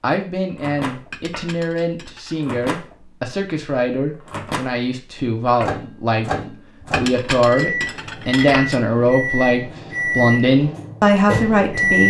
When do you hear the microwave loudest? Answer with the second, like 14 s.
12 s.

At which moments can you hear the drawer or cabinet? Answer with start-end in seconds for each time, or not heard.
not heard.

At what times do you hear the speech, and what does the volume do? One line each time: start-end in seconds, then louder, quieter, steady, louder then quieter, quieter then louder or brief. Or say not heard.
0.0-12.0 louder.